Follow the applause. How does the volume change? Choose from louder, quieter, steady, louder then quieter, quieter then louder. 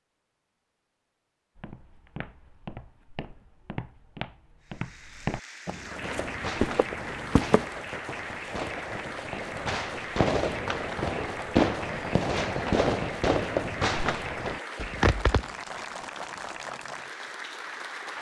steady.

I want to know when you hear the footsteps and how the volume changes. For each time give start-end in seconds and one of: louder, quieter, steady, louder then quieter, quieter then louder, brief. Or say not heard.
1.6-7.7 louder.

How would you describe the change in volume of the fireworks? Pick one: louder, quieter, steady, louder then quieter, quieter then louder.
louder.